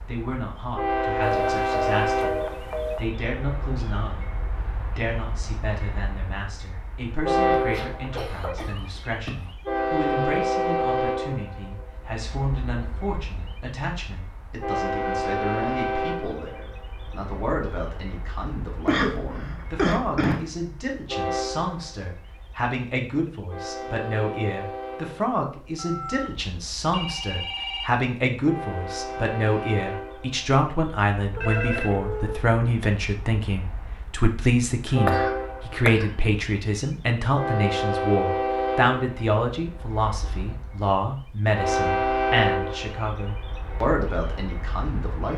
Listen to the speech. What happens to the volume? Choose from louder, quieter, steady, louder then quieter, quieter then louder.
louder.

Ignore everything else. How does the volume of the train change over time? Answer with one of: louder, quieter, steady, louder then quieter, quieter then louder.
quieter then louder.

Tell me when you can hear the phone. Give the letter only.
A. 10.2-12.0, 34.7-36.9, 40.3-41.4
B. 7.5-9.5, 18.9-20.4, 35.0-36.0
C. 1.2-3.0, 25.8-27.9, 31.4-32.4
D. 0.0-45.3
C.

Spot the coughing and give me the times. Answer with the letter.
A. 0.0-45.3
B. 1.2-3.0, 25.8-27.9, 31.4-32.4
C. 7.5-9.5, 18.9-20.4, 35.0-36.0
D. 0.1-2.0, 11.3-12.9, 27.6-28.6
C.